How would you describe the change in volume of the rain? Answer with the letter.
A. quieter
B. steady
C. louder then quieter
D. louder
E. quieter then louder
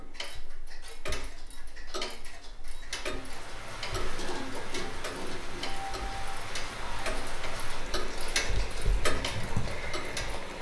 B.